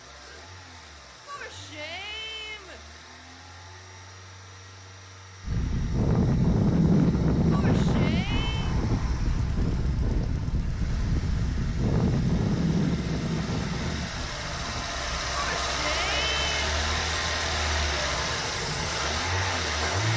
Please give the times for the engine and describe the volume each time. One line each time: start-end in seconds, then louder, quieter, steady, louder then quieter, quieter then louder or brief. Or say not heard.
0.0-20.1 louder.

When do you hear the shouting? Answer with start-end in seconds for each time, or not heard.
1.2-2.8, 7.5-8.8, 15.3-16.9.